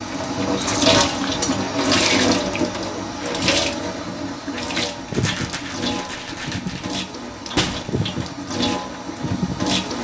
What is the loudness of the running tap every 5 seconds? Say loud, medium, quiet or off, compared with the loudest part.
loud, medium.